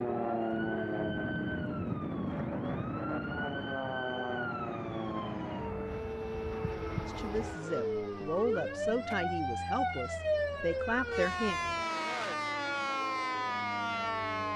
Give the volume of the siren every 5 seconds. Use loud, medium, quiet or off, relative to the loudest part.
medium, loud, loud.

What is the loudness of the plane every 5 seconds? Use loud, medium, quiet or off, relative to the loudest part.
loud, medium, quiet.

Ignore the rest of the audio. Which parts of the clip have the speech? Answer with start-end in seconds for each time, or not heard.
7.0-11.6.